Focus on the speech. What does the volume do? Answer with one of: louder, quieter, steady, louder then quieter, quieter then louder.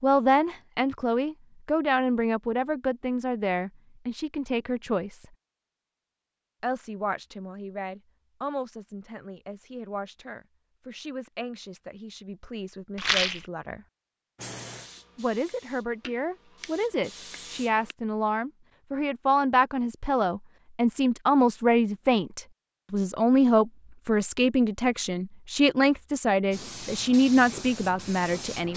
quieter then louder.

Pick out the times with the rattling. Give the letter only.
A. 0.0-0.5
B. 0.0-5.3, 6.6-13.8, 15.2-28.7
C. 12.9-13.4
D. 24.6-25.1
C.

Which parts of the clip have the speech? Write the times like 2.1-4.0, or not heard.
0.0-5.3, 6.6-13.8, 15.2-28.7.